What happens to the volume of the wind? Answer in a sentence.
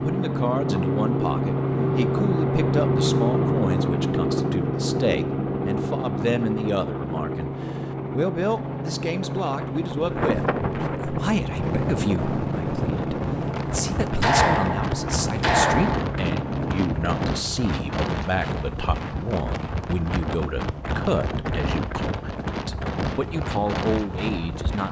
The volume of the wind stays about the same.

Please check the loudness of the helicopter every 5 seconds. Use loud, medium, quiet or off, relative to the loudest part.
loud, medium, medium, medium, off.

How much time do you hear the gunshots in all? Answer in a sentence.
The gunshots can be heard for 2 seconds in total.